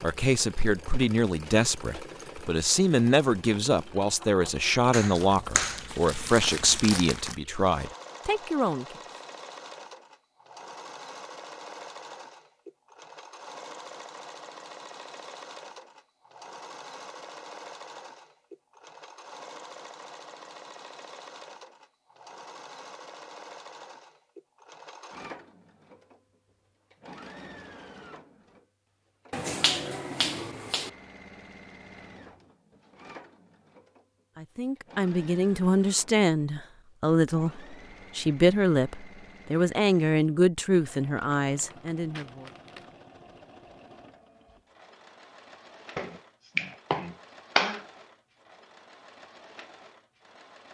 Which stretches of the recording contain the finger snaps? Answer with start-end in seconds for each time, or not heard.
4.9-5.8, 29.3-30.9, 46.0-47.9.